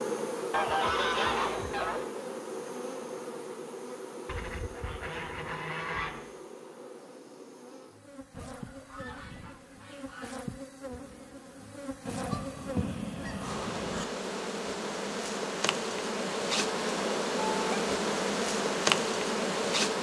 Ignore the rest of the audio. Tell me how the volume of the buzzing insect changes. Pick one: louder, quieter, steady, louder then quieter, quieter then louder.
quieter then louder.